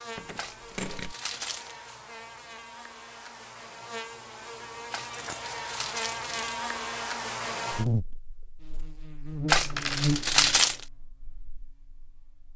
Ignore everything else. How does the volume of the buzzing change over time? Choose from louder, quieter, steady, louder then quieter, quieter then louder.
louder.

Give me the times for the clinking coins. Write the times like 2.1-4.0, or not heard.
0.1-1.1, 5.1-5.5, 9.7-10.3.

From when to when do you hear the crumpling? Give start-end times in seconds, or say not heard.
0.3-1.8, 4.9-6.6, 9.4-10.8.